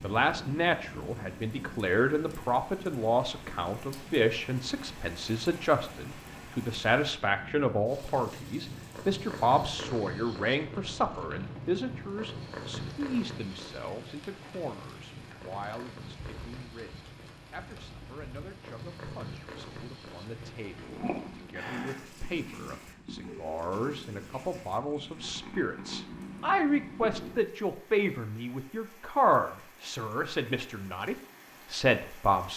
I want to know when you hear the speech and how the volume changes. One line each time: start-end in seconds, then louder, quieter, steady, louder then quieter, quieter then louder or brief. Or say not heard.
0.0-32.5 quieter then louder.